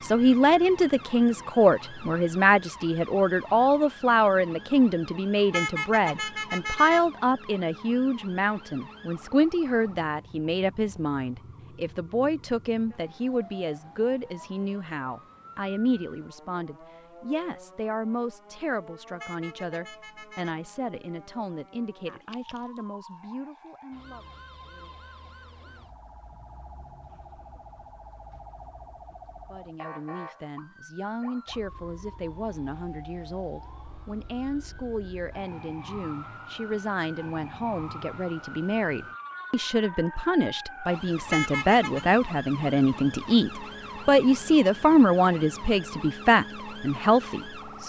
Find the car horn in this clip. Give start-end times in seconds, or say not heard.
5.5-7.0, 19.2-20.6, 41.3-42.0.